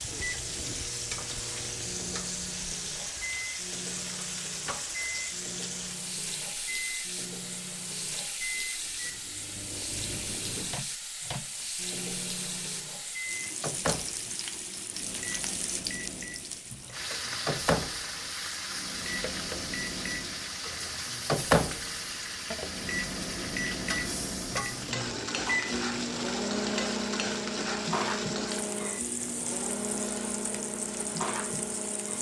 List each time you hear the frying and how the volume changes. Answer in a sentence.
You can hear the frying from 0.0 to 32.1 s, at a steady volume.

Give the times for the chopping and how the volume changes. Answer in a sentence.
The chopping can't be heard in this clip.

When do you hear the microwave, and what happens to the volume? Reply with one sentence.
You can hear the microwave from 0.1 to 32.1 s, getting louder.